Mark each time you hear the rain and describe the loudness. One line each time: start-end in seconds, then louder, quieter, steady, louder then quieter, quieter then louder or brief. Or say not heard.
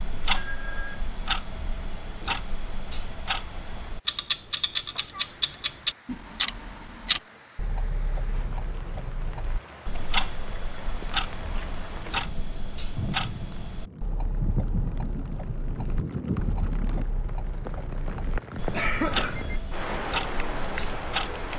0.0-21.5 louder.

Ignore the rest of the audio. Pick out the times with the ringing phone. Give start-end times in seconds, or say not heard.
0.3-1.1, 18.7-19.6.